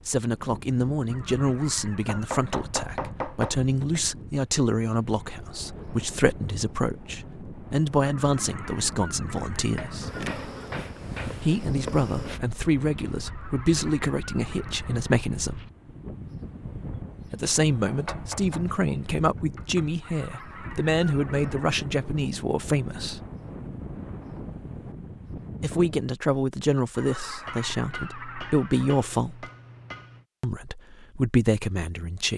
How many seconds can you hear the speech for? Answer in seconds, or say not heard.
26 s.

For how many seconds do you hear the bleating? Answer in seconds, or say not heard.
not heard.